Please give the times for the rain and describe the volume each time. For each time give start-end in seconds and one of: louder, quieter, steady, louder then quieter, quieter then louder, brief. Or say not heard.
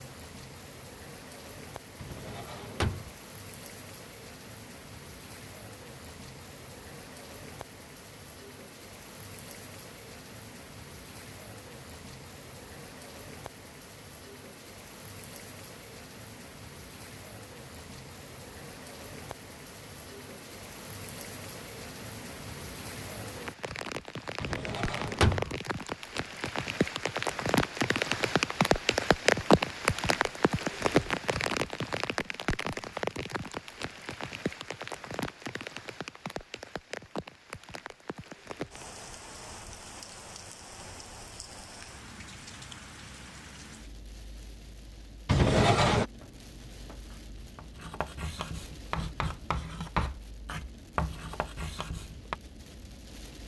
0.0-53.4 louder then quieter.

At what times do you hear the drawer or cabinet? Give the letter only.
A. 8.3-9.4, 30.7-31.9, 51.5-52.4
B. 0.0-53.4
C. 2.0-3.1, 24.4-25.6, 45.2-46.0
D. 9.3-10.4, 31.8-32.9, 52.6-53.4
C.